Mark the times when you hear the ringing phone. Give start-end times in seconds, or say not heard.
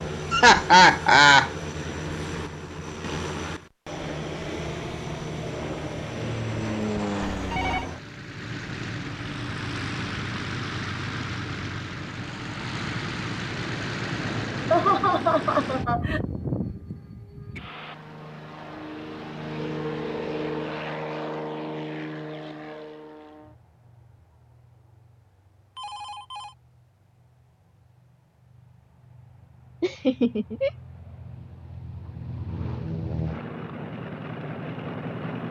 7.3-7.8, 19.6-20.7, 25.8-26.6.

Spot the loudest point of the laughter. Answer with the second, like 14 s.
1 s.